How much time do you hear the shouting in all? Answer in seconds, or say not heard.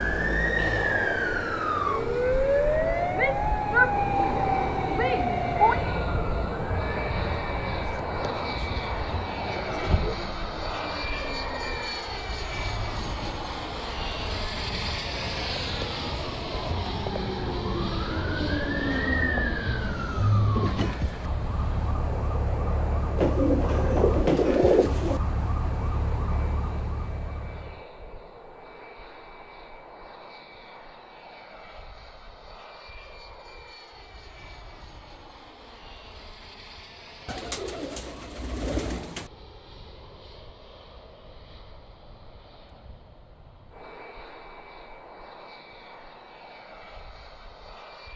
3 s.